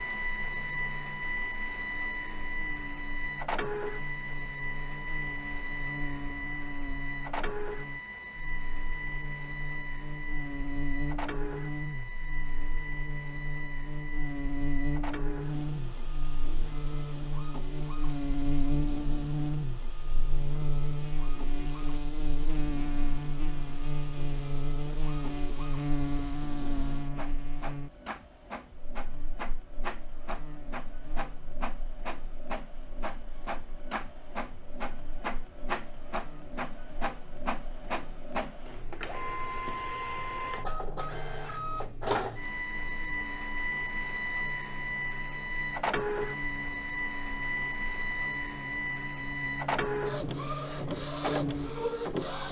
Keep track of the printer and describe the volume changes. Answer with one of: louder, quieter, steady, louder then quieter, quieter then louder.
quieter then louder.